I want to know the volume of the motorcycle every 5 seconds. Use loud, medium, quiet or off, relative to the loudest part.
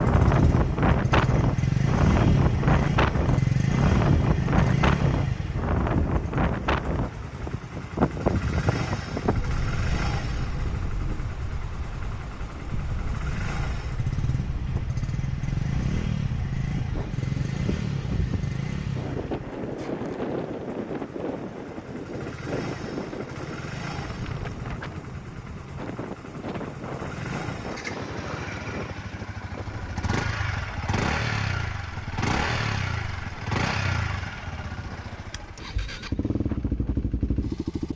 loud, medium, medium, medium, quiet, quiet, medium, medium.